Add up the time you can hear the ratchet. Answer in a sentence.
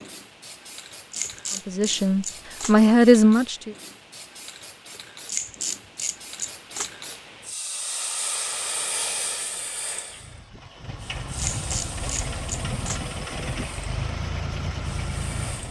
You can hear the ratchet for 5 seconds altogether.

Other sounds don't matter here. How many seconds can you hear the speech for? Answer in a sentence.
You can hear the speech for 2 seconds altogether.